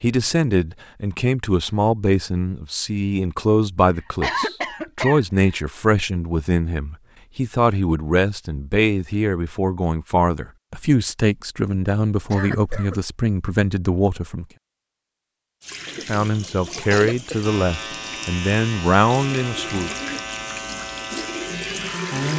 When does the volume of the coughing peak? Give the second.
4 s.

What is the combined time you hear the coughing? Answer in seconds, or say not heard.
3 s.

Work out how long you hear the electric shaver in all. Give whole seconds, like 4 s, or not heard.
5 s.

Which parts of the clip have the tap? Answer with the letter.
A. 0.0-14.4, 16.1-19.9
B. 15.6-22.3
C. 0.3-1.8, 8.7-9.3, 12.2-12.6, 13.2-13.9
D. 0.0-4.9
B.